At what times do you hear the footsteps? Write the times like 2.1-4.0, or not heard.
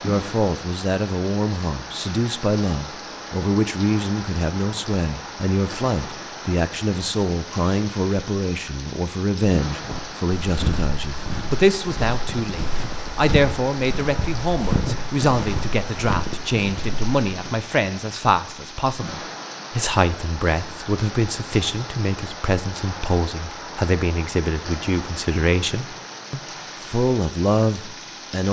9.8-17.6.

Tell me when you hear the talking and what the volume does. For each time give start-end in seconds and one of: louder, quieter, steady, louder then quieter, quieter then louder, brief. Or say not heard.
0.0-28.4 steady.